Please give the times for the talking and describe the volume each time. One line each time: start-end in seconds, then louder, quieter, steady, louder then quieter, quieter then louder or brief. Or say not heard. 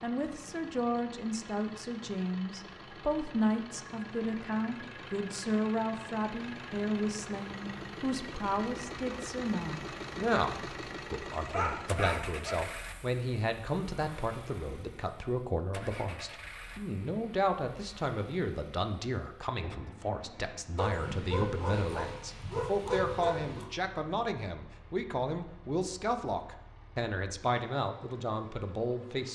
0.0-29.3 steady.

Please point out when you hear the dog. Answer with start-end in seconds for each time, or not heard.
11.3-12.7, 20.8-23.6.